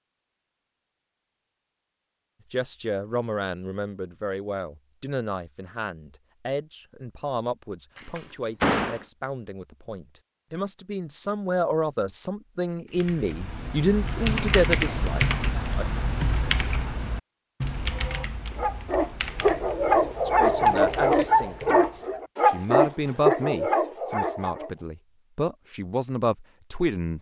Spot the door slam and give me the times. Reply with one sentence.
You can hear the door slam from 8.0 to 9.1 s.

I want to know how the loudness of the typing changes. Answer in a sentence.
The volume of the typing goes down.